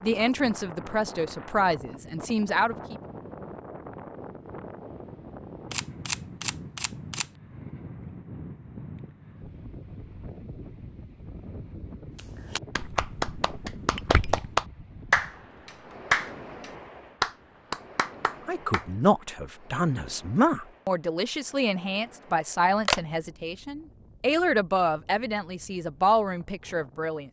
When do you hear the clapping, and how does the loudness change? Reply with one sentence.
The clapping can be heard from 12.2 to 18.9 s, getting louder then quieter.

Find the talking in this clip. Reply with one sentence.
The talking can be heard from 0.0 to 3.0 s and from 18.4 to 27.2 s.